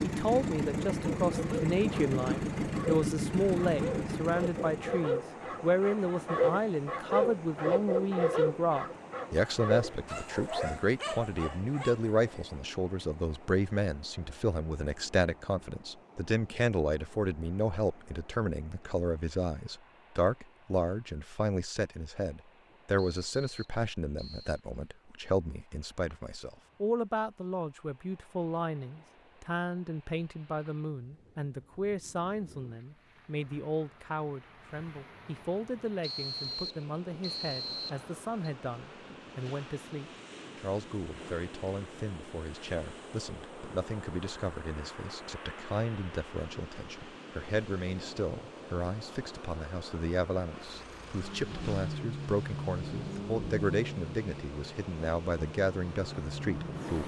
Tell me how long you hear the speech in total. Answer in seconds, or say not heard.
57 s.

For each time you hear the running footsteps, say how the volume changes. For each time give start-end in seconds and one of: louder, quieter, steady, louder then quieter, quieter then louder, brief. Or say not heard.
not heard.